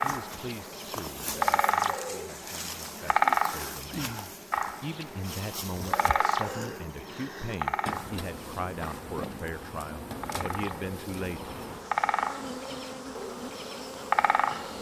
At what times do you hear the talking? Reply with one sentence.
You can hear the talking from 0.0 to 4.2 s and from 4.8 to 11.6 s.